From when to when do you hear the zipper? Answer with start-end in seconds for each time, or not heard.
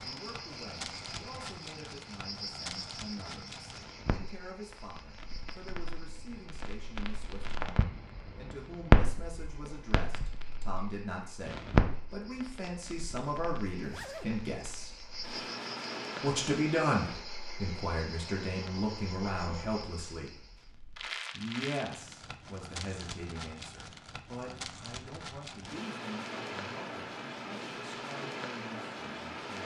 13.8-14.3.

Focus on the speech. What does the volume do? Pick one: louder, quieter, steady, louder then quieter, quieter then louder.
louder then quieter.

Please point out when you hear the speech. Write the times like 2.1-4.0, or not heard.
0.0-15.1, 16.2-20.4, 21.3-29.6.